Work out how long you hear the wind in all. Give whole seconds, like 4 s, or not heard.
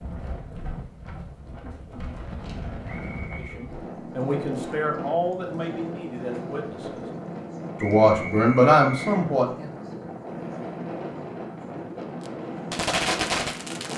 14 s.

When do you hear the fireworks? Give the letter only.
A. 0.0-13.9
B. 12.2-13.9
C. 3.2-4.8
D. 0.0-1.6
B.